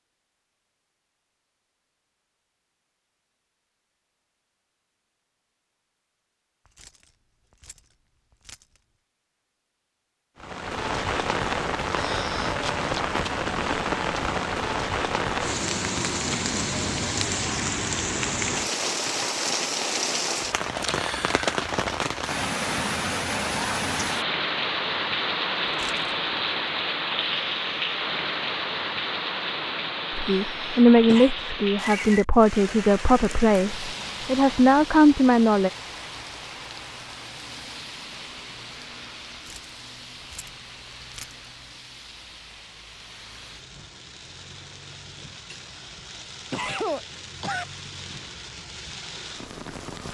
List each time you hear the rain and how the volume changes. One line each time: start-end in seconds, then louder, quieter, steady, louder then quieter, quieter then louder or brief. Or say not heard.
10.3-50.0 quieter.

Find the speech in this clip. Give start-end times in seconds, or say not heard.
30.1-35.7.